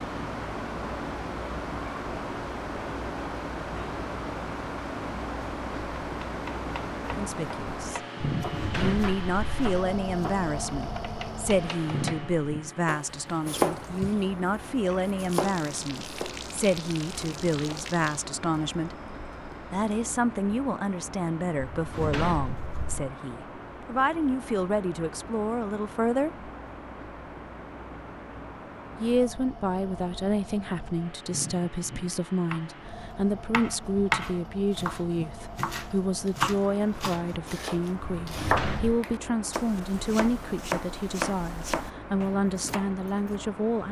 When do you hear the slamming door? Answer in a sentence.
You can hear the slamming door from 8.4 to 9.8 s, from 21.7 to 23.1 s and from 38.1 to 39.0 s.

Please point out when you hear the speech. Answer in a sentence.
You can hear the speech from 7.2 to 8.1 s, from 8.8 to 18.9 s, from 19.7 to 26.5 s and from 29.0 to 43.8 s.